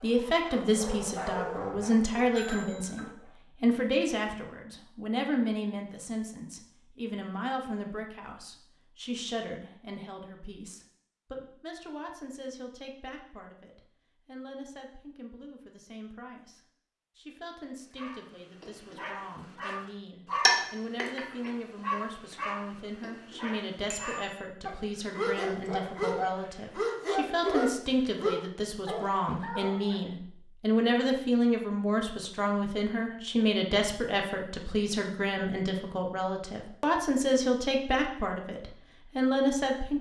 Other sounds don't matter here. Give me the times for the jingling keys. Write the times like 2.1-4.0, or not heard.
not heard.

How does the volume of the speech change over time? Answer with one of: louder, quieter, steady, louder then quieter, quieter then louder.
quieter then louder.